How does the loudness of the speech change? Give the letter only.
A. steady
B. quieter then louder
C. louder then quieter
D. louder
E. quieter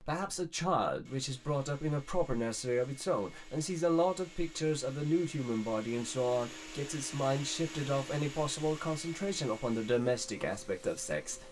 A.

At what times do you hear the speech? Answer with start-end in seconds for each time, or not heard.
0.0-11.4.